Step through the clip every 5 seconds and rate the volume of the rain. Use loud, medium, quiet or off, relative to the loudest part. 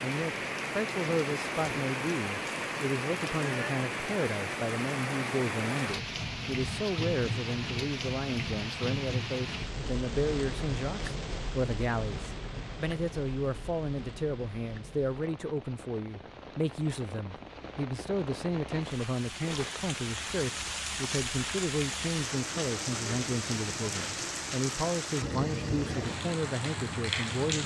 loud, loud, medium, medium, loud, loud.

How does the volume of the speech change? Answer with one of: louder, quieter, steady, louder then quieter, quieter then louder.
steady.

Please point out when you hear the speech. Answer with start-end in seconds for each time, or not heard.
0.0-27.6.